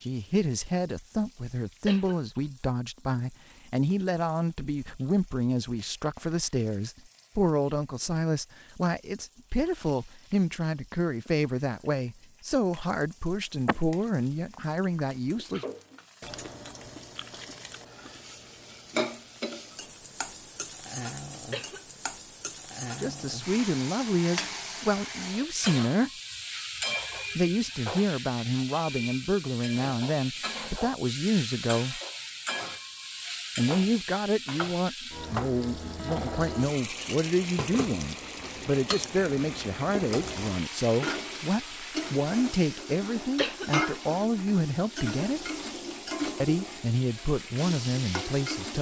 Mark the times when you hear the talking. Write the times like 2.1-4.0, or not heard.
0.0-15.7, 23.0-26.1, 27.4-32.0, 33.5-45.4, 46.4-48.7.